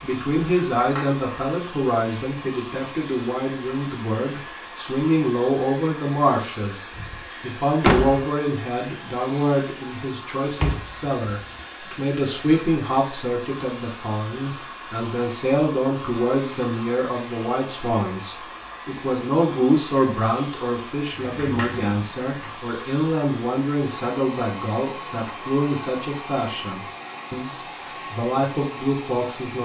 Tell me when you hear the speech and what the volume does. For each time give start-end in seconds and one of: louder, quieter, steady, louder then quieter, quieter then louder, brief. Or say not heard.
0.0-29.6 steady.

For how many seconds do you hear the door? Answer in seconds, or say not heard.
3 s.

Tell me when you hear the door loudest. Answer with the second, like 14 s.
8 s.